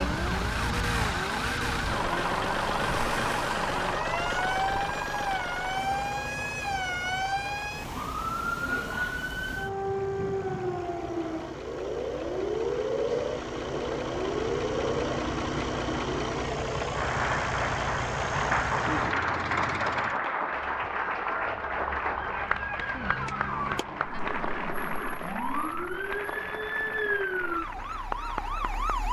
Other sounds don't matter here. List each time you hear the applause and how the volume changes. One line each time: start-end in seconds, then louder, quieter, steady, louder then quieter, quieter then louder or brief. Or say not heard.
16.9-29.0 quieter.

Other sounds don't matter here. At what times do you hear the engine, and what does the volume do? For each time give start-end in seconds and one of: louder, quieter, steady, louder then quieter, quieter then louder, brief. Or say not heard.
0.0-20.2 quieter then louder.